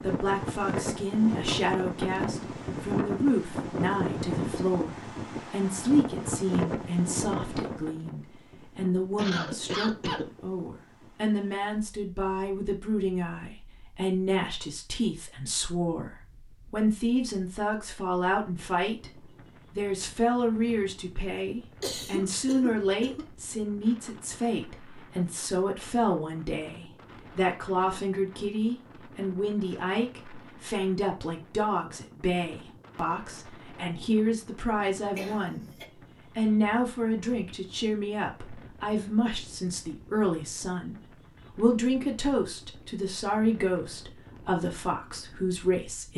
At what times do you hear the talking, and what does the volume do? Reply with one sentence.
You can hear the talking from 0.0 to 35.7 s, at a steady volume; and from 36.4 to 46.1 s, at a steady volume.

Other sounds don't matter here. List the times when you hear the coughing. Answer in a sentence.
The coughing can be heard from 9.2 to 10.2 s, from 21.8 to 23.2 s and from 35.1 to 35.9 s.